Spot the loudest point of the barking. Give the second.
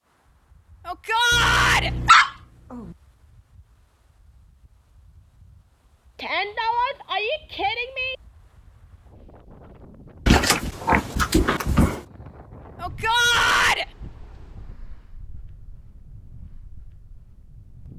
2 s.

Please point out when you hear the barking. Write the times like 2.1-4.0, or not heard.
1.3-2.9, 10.2-12.0.